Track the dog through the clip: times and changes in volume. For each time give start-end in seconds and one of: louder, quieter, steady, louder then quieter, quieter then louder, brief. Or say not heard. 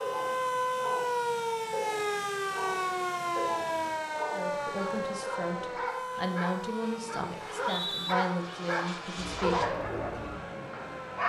0.0-11.2 louder.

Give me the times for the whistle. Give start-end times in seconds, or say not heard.
7.4-8.2.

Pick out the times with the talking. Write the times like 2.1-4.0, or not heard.
4.3-9.8.